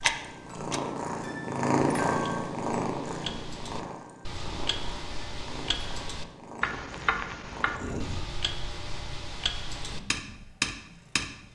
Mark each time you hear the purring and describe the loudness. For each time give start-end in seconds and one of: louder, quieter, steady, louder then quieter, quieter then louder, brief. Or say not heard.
0.0-11.5 quieter.